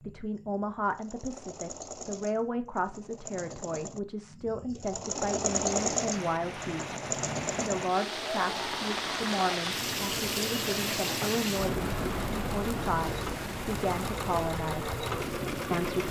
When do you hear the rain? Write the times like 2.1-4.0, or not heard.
5.3-16.0.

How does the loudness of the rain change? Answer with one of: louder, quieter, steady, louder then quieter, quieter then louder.
louder then quieter.